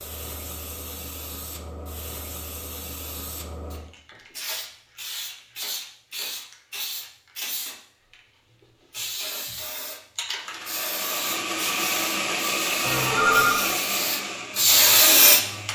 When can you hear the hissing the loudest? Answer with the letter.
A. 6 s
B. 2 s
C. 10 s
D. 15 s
D.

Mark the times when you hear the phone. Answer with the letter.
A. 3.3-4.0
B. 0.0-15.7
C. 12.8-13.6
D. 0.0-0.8
C.